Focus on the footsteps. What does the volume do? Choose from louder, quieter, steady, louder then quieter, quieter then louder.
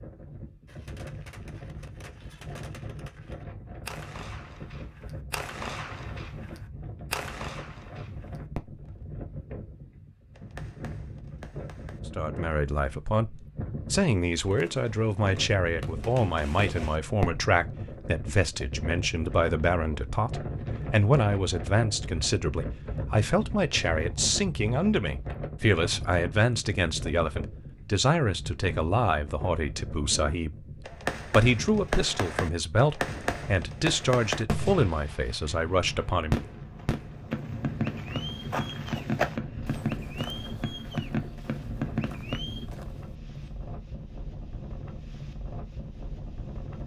louder then quieter.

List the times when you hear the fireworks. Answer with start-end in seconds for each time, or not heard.
0.7-9.1, 10.3-12.6, 14.4-17.4, 30.9-42.6.